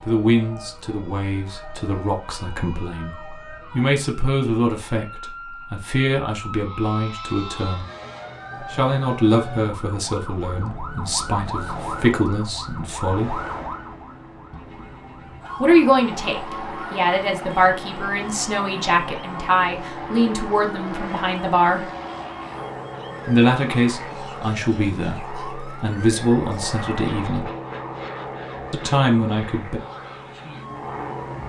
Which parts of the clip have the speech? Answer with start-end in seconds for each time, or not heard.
0.1-7.8, 8.7-13.3, 15.6-21.9, 23.2-27.5, 28.7-29.8.